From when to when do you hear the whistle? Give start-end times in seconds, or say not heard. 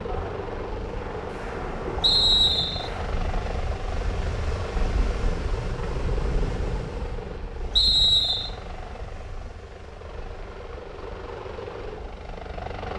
2.0-2.9, 7.8-8.5.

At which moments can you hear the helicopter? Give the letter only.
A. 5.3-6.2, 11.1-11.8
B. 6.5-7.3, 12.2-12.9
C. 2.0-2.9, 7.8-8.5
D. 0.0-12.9
D.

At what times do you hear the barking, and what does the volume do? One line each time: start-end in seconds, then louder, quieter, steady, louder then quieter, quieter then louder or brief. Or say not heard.
not heard.